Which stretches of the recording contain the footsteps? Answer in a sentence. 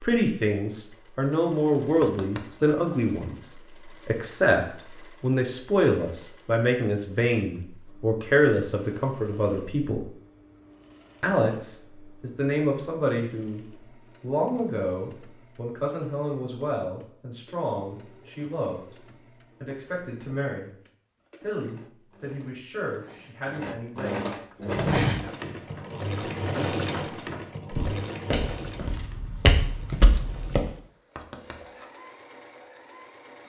You can hear the footsteps from 24.7 to 30.6 s.